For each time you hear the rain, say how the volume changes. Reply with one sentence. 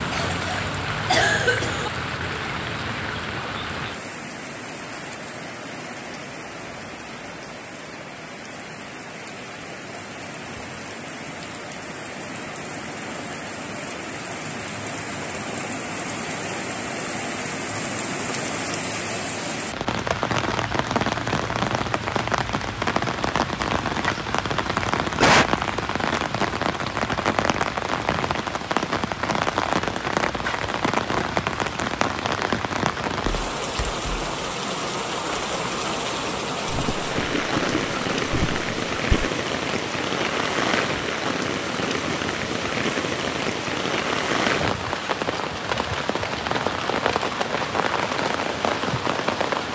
You can hear the rain from 0.0 to 49.6 s, getting louder.